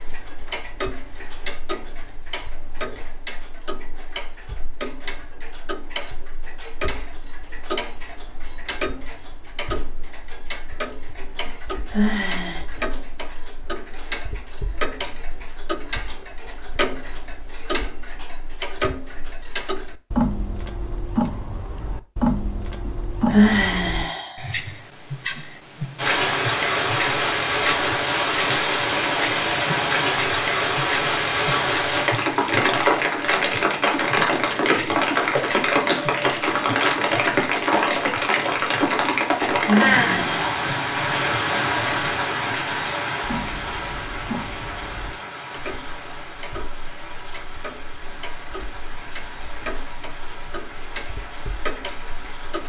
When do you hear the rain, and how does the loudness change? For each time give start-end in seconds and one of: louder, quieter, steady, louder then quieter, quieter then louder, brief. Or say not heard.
25.9-52.6 quieter.